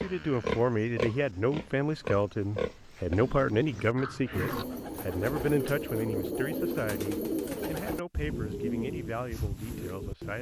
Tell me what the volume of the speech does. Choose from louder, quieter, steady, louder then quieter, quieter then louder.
quieter.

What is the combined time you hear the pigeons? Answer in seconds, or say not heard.
6 s.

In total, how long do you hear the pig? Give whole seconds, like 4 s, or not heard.
5 s.